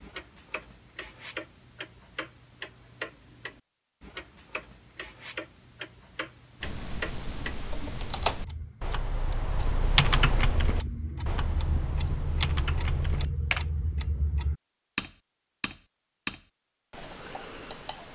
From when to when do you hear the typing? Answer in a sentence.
The typing can be heard from 6.6 to 13.7 s.